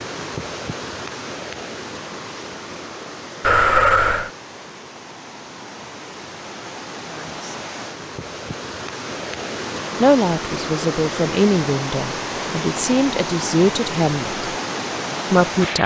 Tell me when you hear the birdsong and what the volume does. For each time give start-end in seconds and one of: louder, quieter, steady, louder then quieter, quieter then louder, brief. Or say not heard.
not heard.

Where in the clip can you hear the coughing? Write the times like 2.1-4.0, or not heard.
3.4-4.3.